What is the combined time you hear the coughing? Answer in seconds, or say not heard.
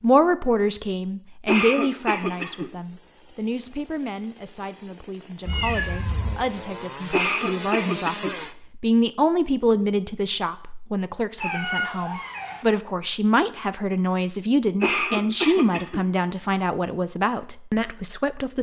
4 s.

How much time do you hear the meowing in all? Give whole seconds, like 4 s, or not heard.
2 s.